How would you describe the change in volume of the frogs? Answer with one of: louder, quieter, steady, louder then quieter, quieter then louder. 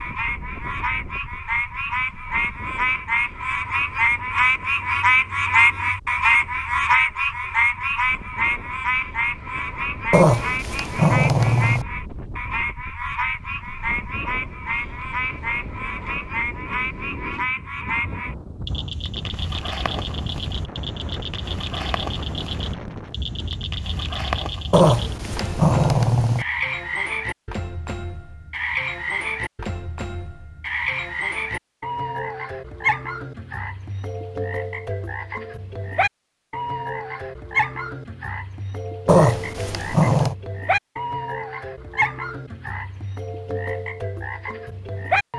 quieter.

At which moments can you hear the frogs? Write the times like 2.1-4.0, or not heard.
0.0-45.3.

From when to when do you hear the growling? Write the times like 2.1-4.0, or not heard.
10.1-11.8, 24.7-26.4, 39.0-40.4.